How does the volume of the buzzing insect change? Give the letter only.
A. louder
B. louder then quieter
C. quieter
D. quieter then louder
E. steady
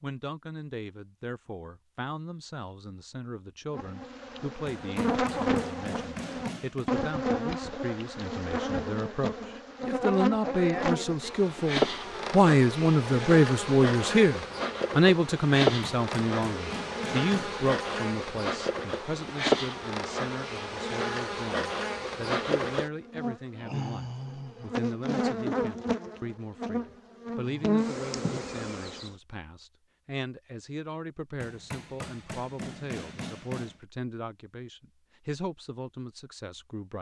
E.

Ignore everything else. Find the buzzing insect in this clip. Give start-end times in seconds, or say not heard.
3.7-29.1.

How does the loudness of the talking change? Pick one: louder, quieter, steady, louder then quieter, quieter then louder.
louder then quieter.